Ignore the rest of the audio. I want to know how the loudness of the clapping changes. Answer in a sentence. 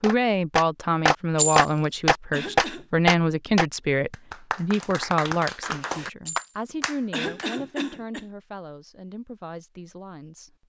The loudness of the clapping goes down.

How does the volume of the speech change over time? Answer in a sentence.
The volume of the speech goes down.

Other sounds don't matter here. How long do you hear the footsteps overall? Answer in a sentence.
The footsteps can't be heard in this clip.